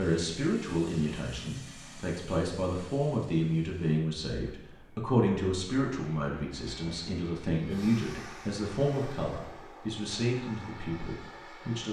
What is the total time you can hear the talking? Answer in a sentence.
The talking can be heard for 12 seconds in total.